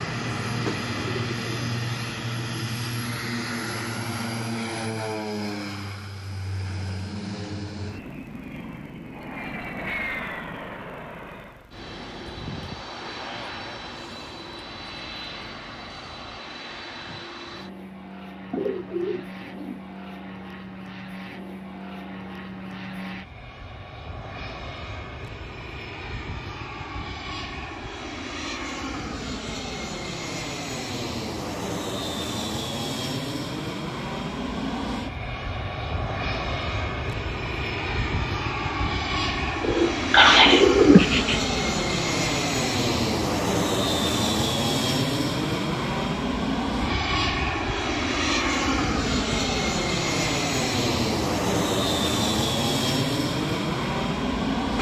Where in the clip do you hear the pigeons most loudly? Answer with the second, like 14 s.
40 s.